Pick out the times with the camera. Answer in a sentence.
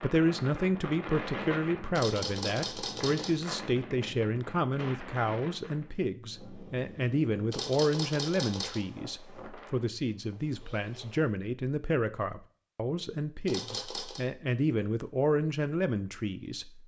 The camera can be heard from 1.9 to 3.4 s, from 7.5 to 8.8 s and from 13.4 to 14.2 s.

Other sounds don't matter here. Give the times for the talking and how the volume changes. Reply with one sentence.
You can hear the talking from 0.0 to 16.8 s, at a steady volume.